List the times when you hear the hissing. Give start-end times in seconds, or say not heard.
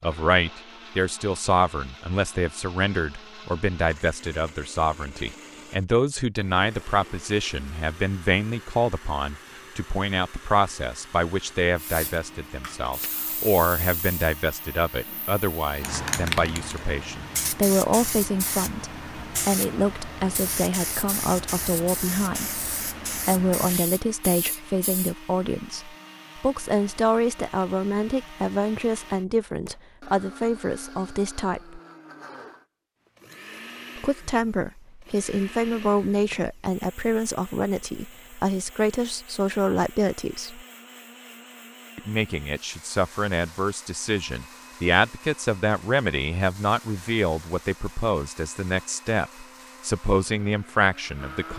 11.8-25.1.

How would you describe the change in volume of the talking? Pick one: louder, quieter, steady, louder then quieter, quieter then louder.
steady.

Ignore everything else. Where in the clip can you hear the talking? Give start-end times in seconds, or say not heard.
0.0-31.8, 34.0-40.6, 42.0-51.5.